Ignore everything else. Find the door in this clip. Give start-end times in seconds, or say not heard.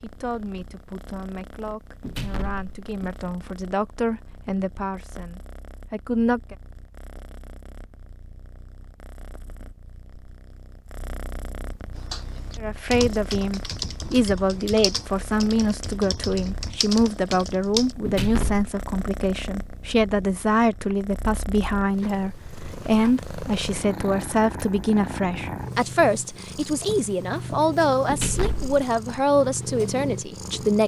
2.0-3.2, 18.1-18.7, 28.1-28.8.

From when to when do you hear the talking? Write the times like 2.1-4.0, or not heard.
0.0-6.5, 12.6-30.8.